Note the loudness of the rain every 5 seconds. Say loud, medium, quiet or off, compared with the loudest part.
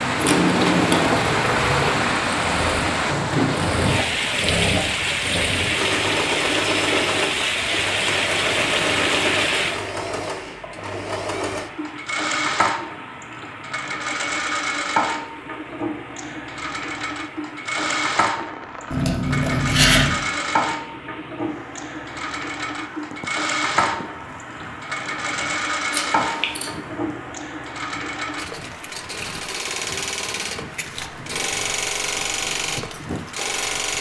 loud, loud, quiet, quiet, quiet, quiet, quiet.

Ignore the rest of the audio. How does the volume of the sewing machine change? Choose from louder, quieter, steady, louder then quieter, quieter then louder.
steady.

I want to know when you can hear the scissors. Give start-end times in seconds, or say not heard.
0.1-1.2, 18.9-20.2, 25.9-26.7.